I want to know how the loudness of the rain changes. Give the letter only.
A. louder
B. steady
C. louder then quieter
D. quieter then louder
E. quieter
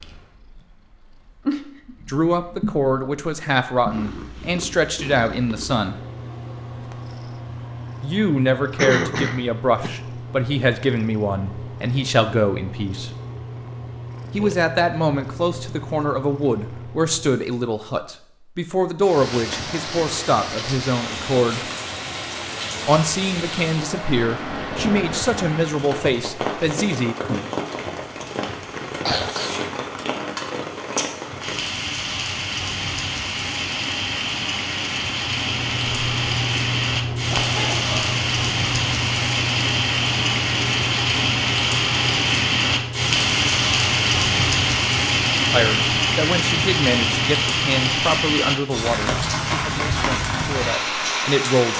A.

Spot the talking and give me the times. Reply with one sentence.
The talking can be heard from 2.0 to 6.0 s, from 8.0 to 13.1 s, from 14.3 to 21.6 s, from 22.9 to 27.1 s and from 45.5 to 51.7 s.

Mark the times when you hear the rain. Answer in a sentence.
The rain can be heard from 19.0 to 51.7 s.